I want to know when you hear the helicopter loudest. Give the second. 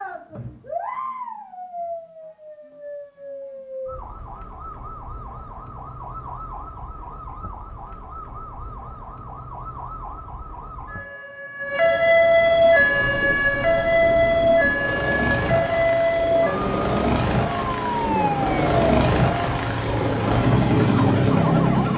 21 s.